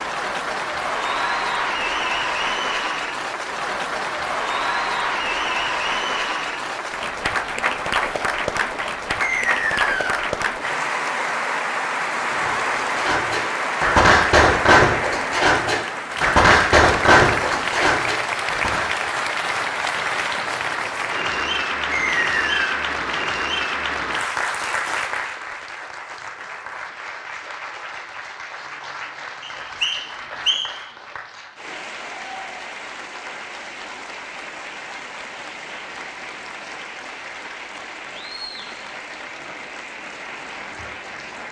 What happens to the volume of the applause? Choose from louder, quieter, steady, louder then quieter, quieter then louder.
quieter.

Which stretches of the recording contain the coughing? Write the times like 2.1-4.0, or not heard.
not heard.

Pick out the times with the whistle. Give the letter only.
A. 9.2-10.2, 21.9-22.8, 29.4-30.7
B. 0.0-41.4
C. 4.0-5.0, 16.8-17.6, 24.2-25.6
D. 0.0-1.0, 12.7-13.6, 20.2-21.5
A.